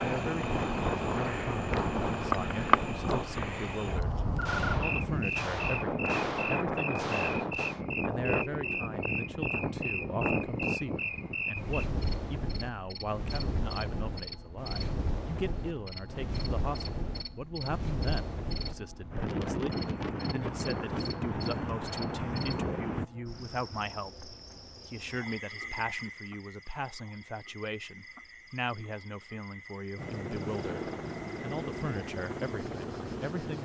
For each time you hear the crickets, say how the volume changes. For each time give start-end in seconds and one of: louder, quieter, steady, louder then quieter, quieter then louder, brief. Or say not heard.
0.0-33.5 quieter.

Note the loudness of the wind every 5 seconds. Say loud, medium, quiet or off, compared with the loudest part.
loud, loud, loud, loud, loud, off, off.